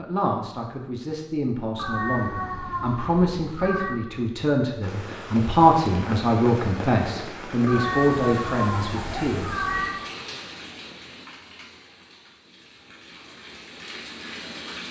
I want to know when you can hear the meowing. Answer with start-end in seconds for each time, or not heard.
1.8-4.0, 7.7-10.0.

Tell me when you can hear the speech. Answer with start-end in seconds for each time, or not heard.
0.0-9.7.